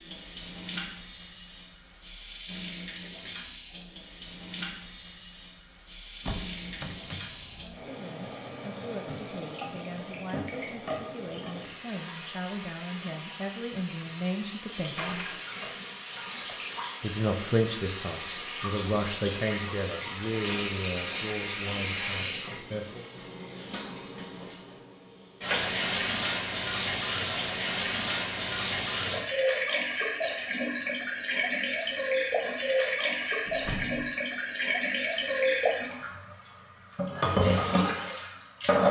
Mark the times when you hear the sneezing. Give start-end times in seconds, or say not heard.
not heard.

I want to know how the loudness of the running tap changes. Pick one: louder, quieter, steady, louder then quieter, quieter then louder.
louder.